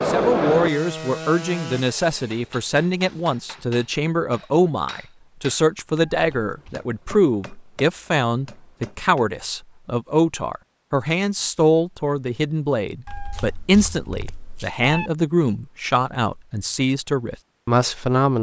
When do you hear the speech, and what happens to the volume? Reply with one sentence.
You can hear the speech from 0.1 to 18.3 s, at a steady volume.